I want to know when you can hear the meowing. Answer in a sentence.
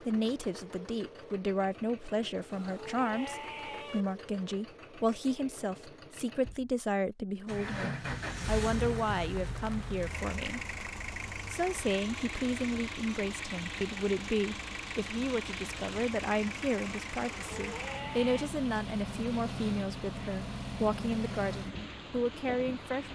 The meowing can be heard from 2.5 to 4.0 s and from 17.2 to 18.5 s.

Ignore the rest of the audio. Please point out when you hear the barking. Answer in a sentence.
You can't hear the barking here.